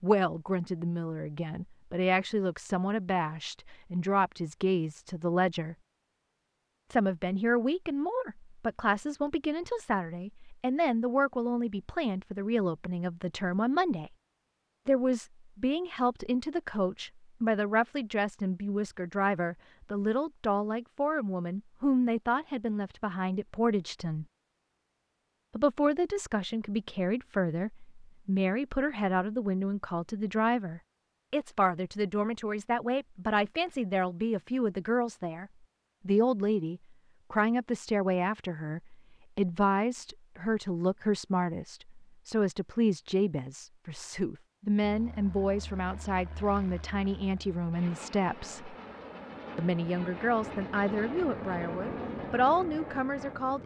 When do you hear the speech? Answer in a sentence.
You can hear the speech from 0.0 to 5.8 s, from 6.9 to 14.1 s, from 14.8 to 24.2 s, from 25.6 to 48.8 s and from 49.5 to 53.6 s.